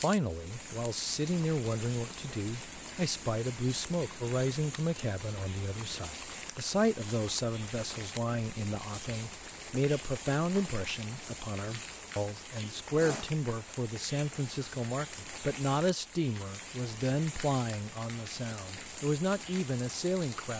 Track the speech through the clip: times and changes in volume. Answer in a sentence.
The speech can be heard from 0.0 to 20.5 s, at a steady volume.